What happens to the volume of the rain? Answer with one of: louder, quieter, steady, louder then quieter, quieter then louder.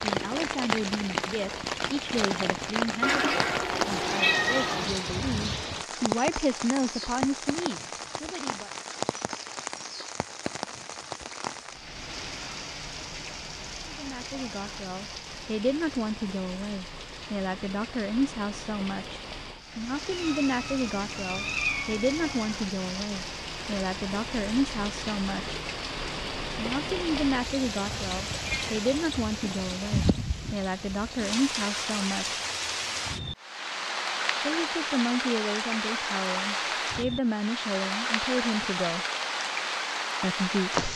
quieter then louder.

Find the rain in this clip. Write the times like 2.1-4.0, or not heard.
0.0-40.9.